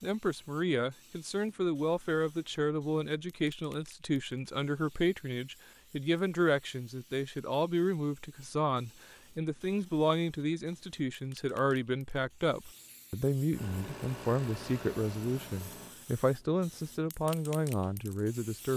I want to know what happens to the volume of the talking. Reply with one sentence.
The loudness of the talking stays about the same.